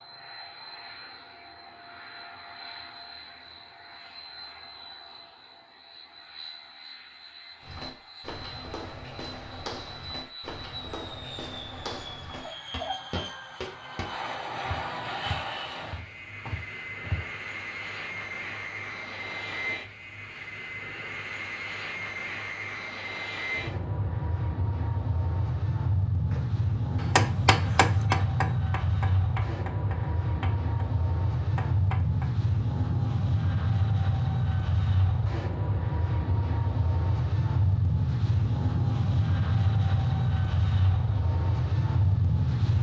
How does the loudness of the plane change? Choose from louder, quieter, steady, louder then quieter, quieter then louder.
louder.